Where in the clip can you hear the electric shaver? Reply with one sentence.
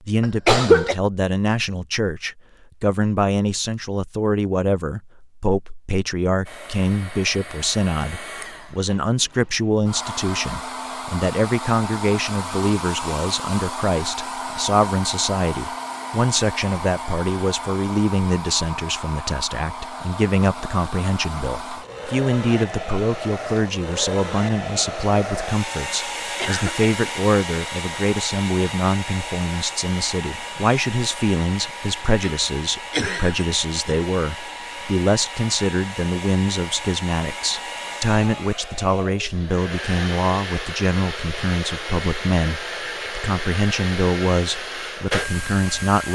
The electric shaver can't be heard in this clip.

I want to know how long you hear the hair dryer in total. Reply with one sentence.
The hair dryer can be heard for 40 seconds in total.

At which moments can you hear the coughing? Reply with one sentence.
The coughing can be heard from 0.2 to 0.9 s, from 26.4 to 26.9 s and from 32.2 to 34.0 s.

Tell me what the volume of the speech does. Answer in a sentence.
The loudness of the speech stays about the same.